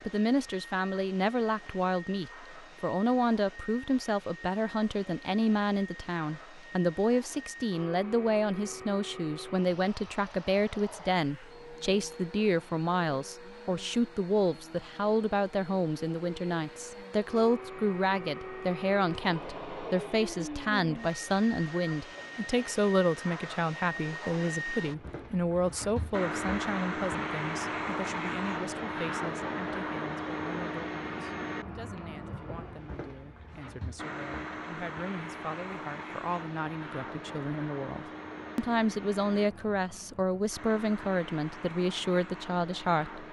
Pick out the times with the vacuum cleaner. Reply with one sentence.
You can hear the vacuum cleaner from 0.0 to 43.2 s.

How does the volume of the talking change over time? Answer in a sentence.
The volume of the talking goes down, then up.